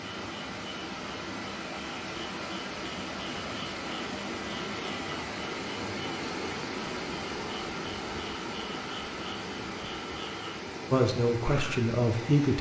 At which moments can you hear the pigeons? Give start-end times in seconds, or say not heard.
not heard.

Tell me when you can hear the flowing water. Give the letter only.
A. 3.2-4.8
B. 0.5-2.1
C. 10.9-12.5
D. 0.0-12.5
D.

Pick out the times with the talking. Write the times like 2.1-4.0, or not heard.
10.9-12.5.